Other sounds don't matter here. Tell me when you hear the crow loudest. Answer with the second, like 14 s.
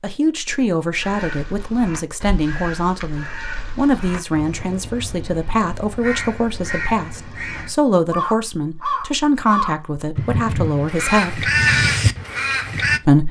12 s.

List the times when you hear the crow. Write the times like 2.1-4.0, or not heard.
1.0-13.0.